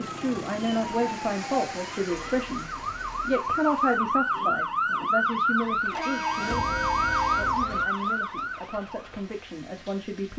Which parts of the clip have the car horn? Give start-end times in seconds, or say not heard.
2.0-3.2, 5.9-7.5.